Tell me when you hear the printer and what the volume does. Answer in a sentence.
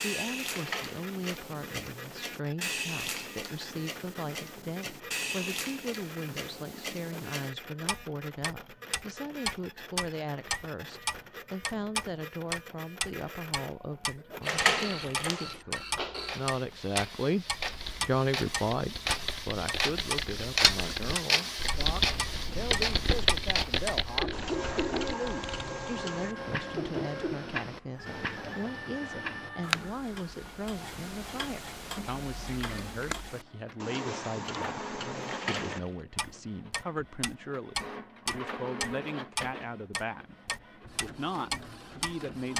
You can hear the printer from 0.0 to 42.5 s, getting louder then quieter.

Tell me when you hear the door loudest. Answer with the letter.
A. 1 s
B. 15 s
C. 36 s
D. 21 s
B.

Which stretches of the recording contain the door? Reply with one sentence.
You can hear the door from 0.5 to 1.4 s, from 14.4 to 15.6 s and from 35.2 to 35.9 s.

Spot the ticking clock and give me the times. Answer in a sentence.
You can hear the ticking clock from 0.0 to 42.5 s.